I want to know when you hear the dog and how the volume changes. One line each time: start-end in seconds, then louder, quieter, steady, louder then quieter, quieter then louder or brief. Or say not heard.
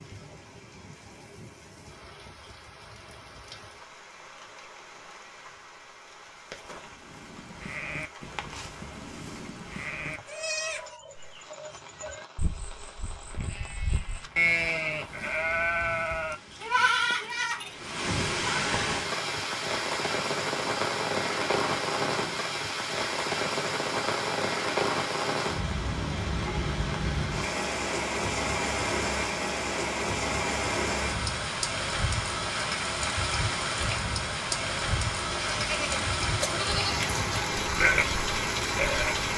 not heard.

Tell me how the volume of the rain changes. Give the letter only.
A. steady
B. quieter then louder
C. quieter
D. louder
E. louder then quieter
D.